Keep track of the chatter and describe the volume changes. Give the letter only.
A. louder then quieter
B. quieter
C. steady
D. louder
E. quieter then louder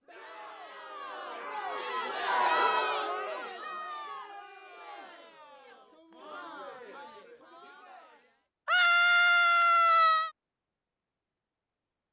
A.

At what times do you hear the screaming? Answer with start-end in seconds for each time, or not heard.
2.2-3.0, 8.7-10.3.